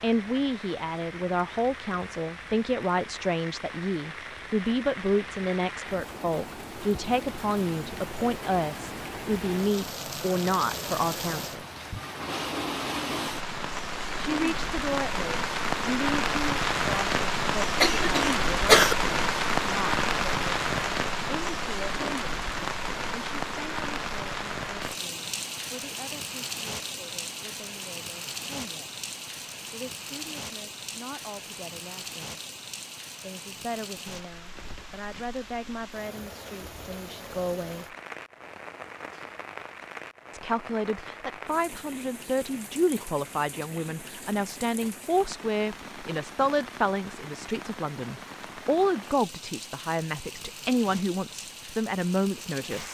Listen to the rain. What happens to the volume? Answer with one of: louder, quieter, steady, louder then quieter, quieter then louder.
louder then quieter.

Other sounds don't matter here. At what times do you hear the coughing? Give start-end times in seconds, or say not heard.
17.8-18.9.